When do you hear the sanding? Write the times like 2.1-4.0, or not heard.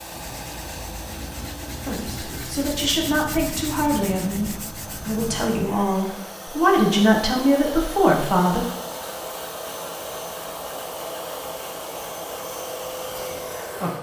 0.0-5.6.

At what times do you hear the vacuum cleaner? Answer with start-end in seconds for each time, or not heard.
0.0-13.9.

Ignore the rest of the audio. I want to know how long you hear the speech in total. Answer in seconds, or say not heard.
7 s.